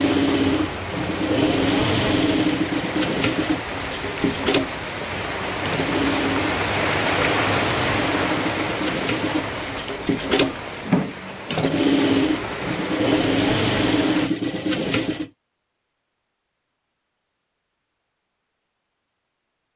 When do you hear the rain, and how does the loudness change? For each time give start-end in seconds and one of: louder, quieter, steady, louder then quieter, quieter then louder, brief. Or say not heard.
0.0-14.3 louder then quieter.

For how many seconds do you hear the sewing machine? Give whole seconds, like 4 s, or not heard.
15 s.